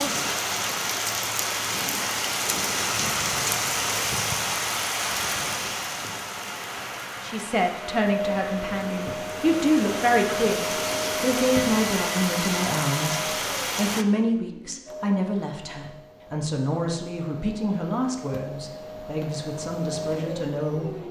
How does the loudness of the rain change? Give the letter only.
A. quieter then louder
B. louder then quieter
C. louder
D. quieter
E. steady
A.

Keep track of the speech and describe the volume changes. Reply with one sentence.
The loudness of the speech goes down.